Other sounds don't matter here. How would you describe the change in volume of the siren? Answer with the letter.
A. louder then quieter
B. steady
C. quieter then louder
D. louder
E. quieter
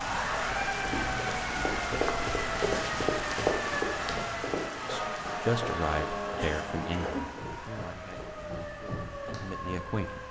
E.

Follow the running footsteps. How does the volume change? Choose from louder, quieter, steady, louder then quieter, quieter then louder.
quieter.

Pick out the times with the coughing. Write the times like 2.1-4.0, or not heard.
6.3-7.3.